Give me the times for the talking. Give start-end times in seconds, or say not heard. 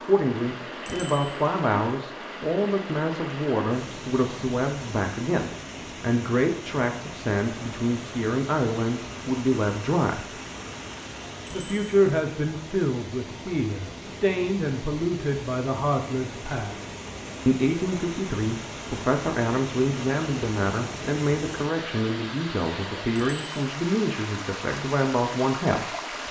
0.0-10.3, 11.5-16.9, 17.4-26.2.